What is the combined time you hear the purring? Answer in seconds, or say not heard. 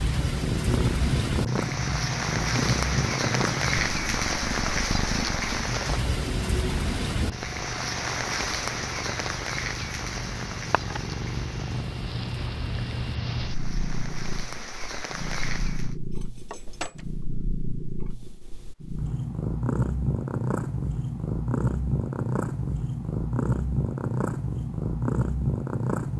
26 s.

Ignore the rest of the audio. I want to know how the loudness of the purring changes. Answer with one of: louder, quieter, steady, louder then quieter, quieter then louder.
quieter then louder.